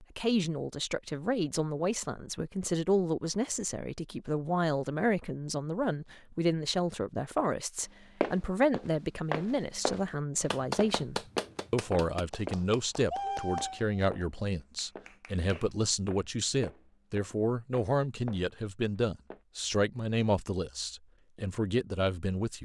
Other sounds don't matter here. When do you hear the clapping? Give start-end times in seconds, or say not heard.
10.5-15.7.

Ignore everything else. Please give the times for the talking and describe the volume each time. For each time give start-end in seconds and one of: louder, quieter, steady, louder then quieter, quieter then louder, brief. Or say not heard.
0.0-22.6 steady.